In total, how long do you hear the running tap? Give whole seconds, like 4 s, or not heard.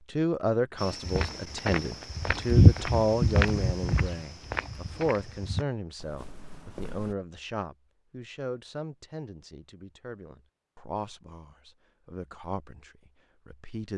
not heard.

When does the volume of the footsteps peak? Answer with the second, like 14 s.
3 s.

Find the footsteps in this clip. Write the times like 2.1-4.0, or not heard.
0.8-7.2.